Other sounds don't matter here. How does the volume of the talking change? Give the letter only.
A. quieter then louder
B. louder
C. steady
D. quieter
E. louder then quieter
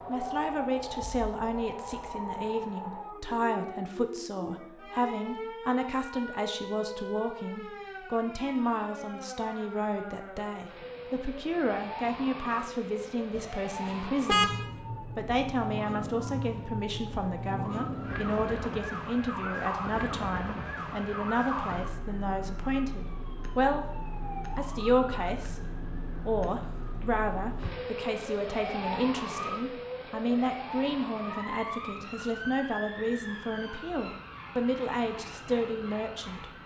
C.